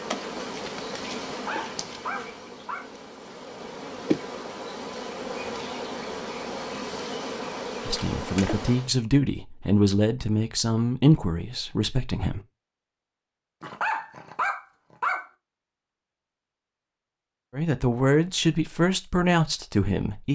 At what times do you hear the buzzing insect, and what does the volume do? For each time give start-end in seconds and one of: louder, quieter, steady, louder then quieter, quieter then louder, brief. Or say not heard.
0.0-8.9 quieter then louder.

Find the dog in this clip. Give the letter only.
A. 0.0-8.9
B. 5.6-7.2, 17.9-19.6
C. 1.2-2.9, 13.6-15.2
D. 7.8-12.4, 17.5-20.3
C.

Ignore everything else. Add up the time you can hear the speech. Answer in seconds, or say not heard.
7 s.